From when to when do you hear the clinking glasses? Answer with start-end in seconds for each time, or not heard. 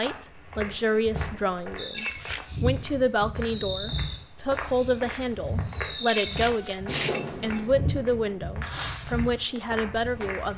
1.8-2.5, 5.8-7.7.